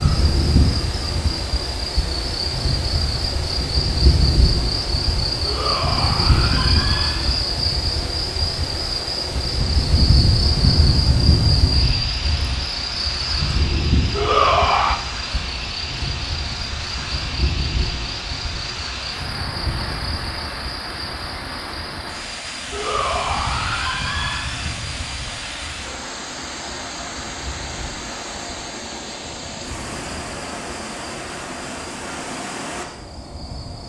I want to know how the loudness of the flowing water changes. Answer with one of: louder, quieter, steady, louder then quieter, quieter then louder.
steady.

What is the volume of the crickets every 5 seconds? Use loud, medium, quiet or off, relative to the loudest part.
loud, loud, loud, medium, quiet, quiet, quiet.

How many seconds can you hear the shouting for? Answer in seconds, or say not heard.
5 s.